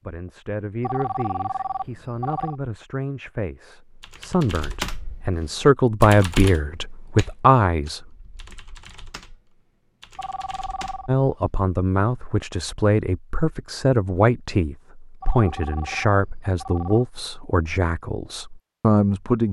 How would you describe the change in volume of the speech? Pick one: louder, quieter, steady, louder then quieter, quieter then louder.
louder.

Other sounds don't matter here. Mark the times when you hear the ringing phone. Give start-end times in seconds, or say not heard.
0.8-2.5, 10.2-11.1, 15.2-17.1.